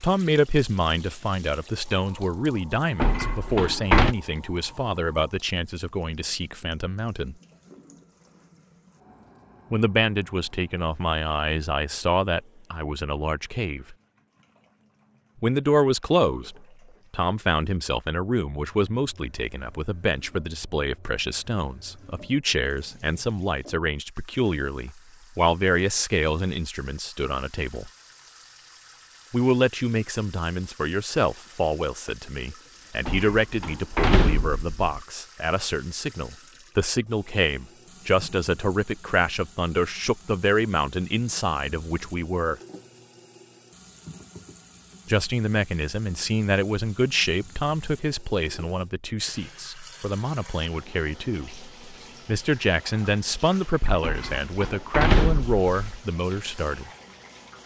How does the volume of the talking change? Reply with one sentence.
The loudness of the talking stays about the same.